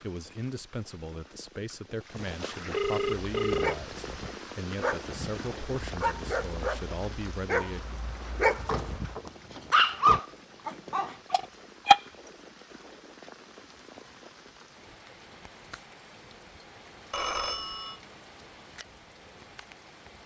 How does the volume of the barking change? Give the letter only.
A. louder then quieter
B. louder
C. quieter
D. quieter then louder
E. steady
B.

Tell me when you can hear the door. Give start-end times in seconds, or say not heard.
8.6-10.2.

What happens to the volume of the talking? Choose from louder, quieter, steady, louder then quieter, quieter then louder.
steady.